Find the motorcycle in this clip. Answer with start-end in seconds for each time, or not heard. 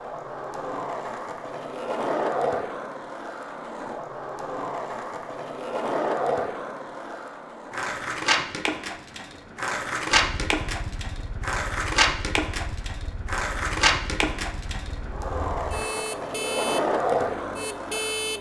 10.1-18.3.